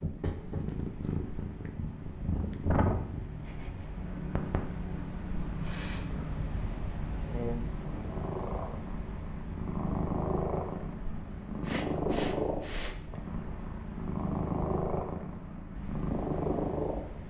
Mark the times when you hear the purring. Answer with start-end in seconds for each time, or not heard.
0.0-17.2.